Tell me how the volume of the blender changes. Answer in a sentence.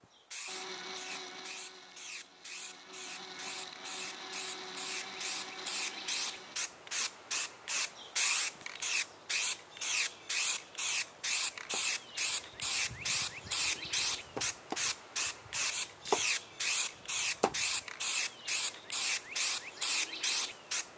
The loudness of the blender goes down, then up.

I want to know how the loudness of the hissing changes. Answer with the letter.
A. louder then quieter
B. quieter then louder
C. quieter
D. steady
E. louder
E.